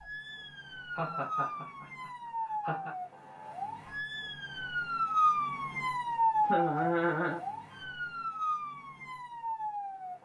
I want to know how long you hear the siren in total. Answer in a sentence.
You can hear the siren for 10 seconds altogether.